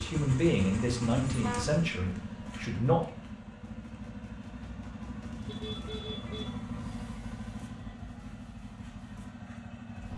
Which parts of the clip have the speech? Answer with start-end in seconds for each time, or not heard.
0.0-3.0.